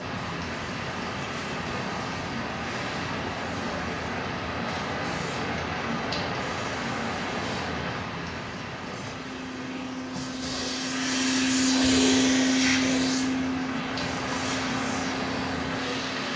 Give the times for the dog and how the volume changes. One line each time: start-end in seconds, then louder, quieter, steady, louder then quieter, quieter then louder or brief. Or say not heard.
not heard.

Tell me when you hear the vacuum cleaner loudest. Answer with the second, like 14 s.
12 s.